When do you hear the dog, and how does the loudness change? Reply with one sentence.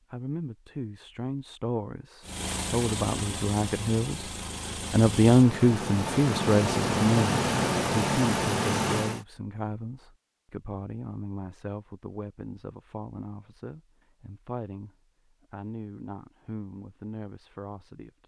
You can't hear the dog here.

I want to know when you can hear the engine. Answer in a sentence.
You can hear the engine from 2.2 to 9.2 s.